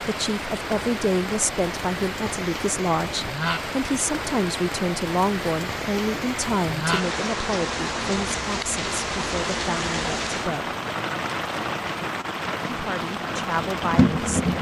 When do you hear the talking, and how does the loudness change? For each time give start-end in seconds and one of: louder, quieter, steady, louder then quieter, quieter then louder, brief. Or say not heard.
0.1-10.8 quieter
12.7-14.5 brief.